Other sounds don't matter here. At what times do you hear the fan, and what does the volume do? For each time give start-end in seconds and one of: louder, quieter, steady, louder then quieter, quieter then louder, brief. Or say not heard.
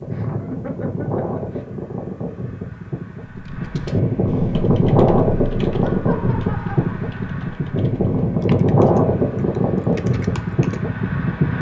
0.0-11.5 louder.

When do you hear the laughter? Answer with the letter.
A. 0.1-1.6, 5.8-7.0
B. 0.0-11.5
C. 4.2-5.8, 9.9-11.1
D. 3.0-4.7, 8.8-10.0
A.